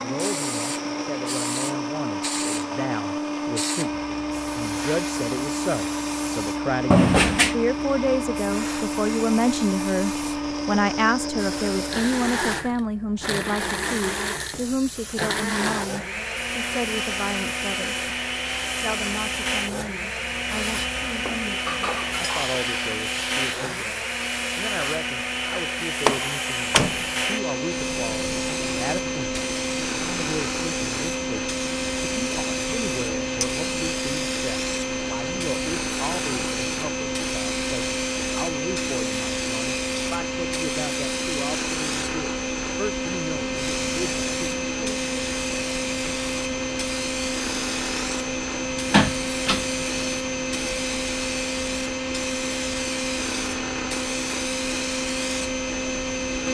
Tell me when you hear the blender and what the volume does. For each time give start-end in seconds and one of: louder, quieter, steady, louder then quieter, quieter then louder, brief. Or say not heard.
0.0-56.4 steady.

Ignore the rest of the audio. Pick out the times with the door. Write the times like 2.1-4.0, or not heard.
6.9-7.5, 26.1-27.1, 48.9-49.6.